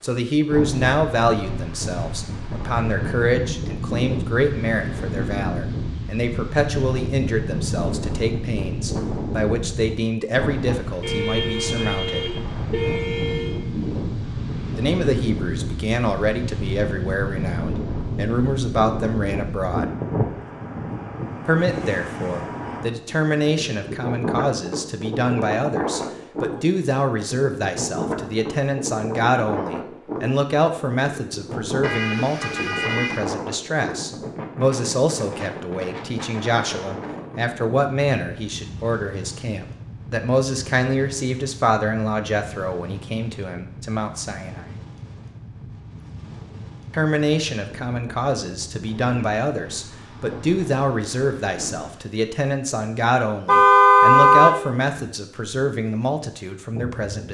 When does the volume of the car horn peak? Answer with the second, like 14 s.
54 s.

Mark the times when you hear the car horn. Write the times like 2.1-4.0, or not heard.
11.0-13.6, 31.8-33.2, 53.5-54.5.